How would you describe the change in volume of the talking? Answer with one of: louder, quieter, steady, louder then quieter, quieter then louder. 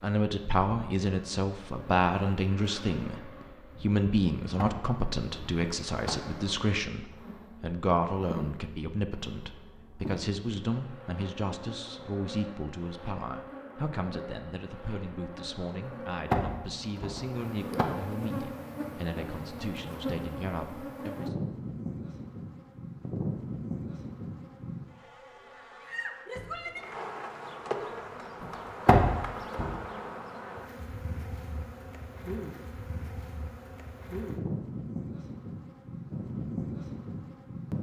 quieter.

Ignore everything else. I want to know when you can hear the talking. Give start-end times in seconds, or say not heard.
0.0-21.4.